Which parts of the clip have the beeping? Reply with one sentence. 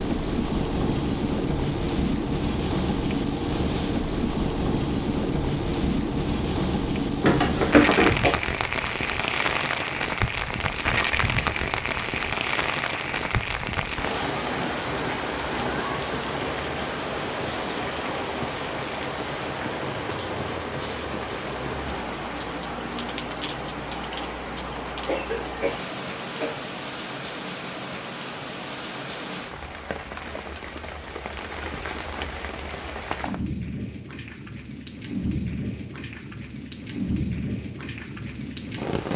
You can't hear the beeping here.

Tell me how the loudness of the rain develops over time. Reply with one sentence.
The volume of the rain goes down.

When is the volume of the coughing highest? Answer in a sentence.
The volume of the coughing peaks at 8 seconds.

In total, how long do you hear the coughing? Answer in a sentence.
The coughing can be heard for 3 seconds in total.